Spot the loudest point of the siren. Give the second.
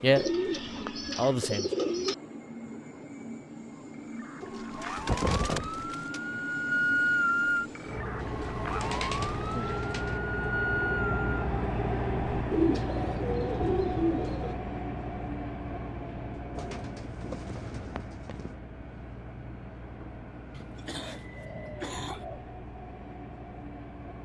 7 s.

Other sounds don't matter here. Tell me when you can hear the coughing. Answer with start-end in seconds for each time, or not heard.
20.5-22.2.